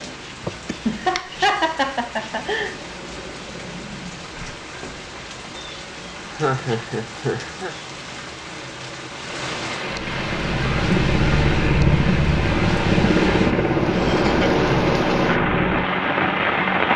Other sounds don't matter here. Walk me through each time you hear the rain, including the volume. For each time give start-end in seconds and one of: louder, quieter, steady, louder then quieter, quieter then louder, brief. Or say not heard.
0.0-16.9 louder.